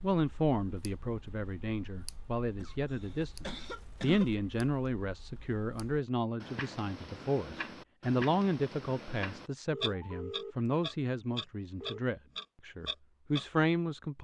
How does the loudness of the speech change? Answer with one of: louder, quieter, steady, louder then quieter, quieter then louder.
steady.